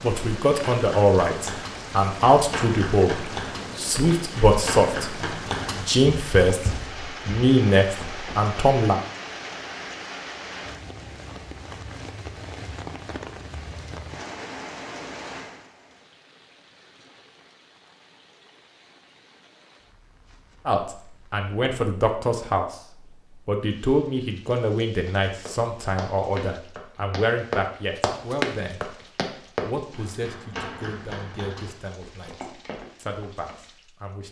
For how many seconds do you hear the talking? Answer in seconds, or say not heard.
21 s.